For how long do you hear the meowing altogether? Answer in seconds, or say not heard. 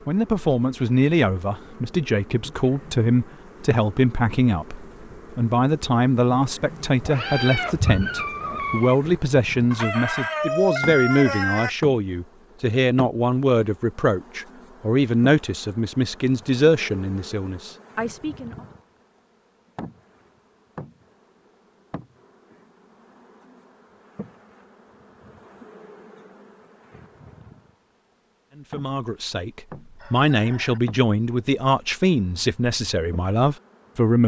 2 s.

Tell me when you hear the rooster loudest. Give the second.
11 s.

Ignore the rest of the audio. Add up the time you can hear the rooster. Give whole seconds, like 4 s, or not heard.
3 s.